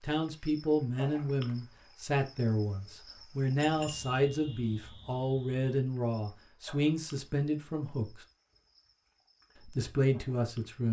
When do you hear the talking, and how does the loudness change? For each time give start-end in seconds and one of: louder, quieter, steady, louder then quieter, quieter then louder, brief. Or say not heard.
0.0-8.2 steady
9.7-10.8 brief.